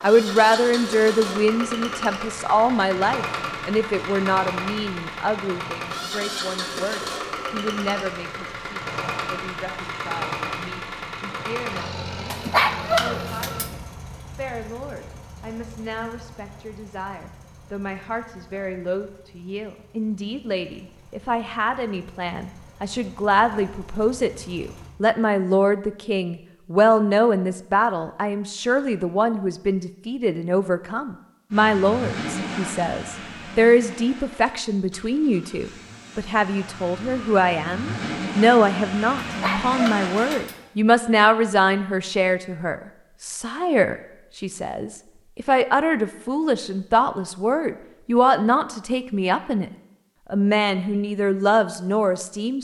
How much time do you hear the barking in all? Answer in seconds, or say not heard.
3 s.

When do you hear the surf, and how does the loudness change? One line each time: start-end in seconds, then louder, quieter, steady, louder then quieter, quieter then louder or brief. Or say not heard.
not heard.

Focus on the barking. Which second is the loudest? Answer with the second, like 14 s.
13 s.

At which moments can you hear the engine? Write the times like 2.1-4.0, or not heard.
0.0-24.9, 31.5-40.6.